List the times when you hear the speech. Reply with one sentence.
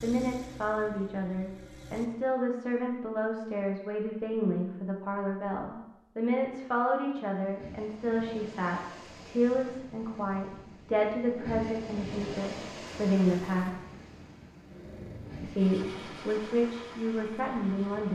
The speech can be heard from 0.0 to 13.8 s and from 15.4 to 18.1 s.